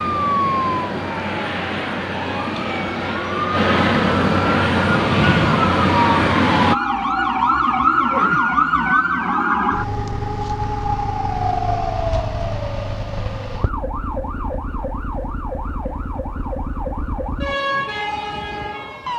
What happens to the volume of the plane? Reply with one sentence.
The volume of the plane goes up.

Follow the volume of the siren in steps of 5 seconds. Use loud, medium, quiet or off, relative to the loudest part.
medium, loud, medium, medium.